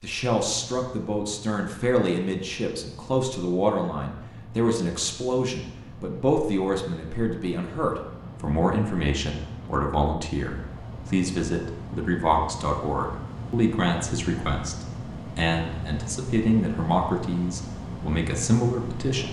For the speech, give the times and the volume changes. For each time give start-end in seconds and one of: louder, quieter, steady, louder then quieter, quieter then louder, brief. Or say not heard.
0.0-19.2 steady.